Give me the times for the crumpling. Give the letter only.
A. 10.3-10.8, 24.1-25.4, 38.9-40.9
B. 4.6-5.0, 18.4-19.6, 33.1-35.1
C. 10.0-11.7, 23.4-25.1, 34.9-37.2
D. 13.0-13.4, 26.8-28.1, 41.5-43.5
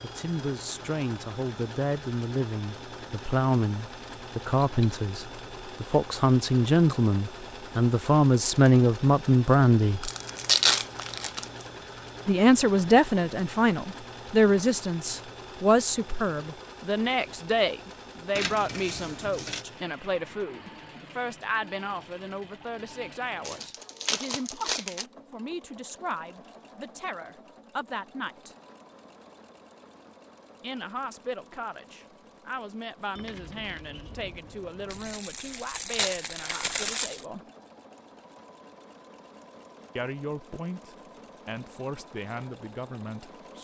C.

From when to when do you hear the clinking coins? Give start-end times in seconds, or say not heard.
4.6-5.0, 18.4-19.6, 33.1-35.1.